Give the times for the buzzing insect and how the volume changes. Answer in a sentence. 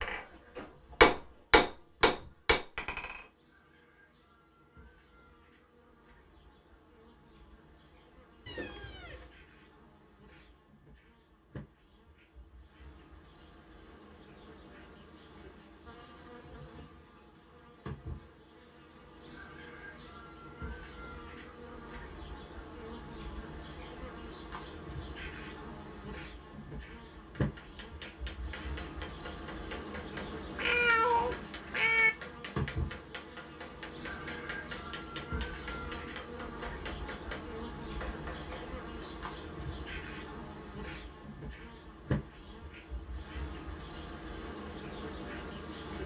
The buzzing insect can be heard from 0.2 to 46.0 s, getting louder.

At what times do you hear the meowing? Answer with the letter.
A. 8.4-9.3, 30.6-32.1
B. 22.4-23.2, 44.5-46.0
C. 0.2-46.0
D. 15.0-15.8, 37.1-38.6
A.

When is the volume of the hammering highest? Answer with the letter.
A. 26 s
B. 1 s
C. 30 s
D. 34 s
B.